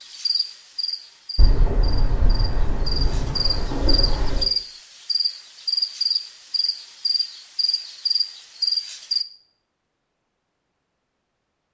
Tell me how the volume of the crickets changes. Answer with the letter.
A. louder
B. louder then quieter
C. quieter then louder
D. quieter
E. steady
A.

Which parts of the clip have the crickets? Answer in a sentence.
You can hear the crickets from 0.0 to 9.2 s.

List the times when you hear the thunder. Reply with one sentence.
You can hear the thunder from 1.4 to 4.5 s.